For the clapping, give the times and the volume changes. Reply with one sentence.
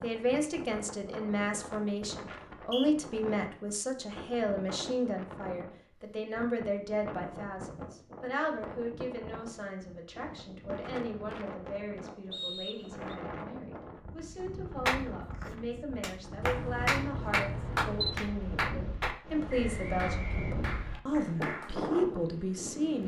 You can hear the clapping from 14.8 to 21.8 s, getting louder then quieter.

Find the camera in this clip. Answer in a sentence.
You can hear the camera from 16.4 to 18.2 s.